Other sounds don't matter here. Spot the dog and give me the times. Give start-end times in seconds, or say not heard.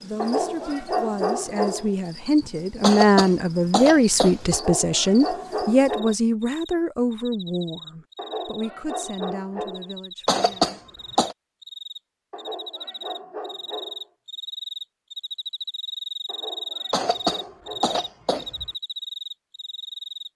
0.1-1.9, 4.5-6.2, 8.2-9.9, 12.3-14.1, 16.2-18.0.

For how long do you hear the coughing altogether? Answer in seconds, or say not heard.
5 s.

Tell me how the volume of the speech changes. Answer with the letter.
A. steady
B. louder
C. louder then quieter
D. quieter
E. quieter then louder
C.